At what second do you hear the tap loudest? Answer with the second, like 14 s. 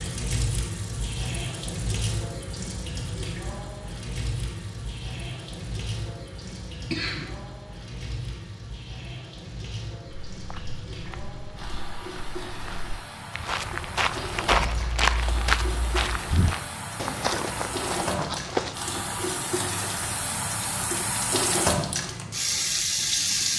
23 s.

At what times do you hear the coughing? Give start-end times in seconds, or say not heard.
6.9-7.3.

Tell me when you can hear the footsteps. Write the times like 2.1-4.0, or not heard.
10.3-18.8.